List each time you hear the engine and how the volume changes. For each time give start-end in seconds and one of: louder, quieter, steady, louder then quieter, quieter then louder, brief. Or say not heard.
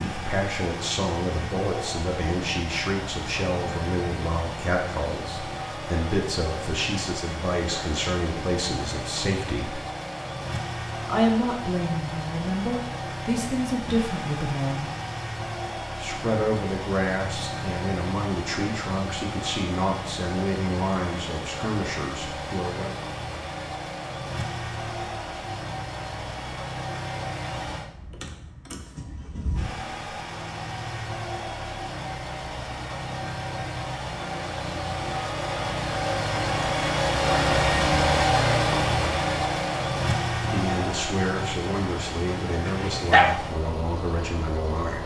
0.0-45.0 louder.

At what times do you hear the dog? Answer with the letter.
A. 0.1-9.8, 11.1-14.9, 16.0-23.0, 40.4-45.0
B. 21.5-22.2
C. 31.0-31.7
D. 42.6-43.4
D.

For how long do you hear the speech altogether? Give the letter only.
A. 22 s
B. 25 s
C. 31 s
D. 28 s
B.